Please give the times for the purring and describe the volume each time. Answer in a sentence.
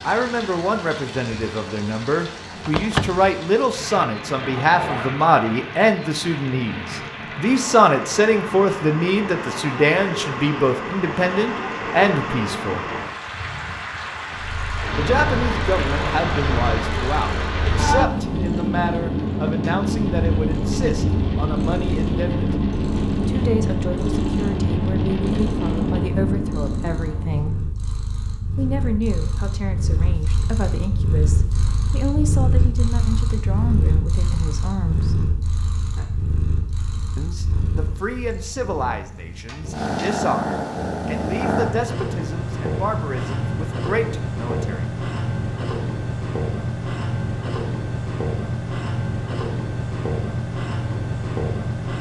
You can hear the purring from 14.3 to 51.9 s, getting louder.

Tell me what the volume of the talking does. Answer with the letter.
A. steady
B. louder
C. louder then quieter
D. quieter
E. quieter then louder
D.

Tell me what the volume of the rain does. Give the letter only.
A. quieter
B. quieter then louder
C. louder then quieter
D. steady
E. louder
E.